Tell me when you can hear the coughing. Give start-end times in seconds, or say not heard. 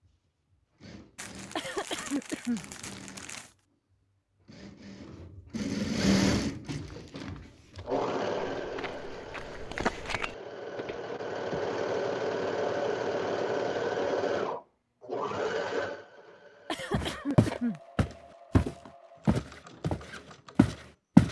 1.6-2.6, 16.6-17.8.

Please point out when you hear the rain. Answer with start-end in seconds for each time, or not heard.
not heard.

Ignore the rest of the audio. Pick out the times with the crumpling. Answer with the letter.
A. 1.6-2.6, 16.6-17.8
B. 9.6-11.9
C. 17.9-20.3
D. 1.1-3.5
D.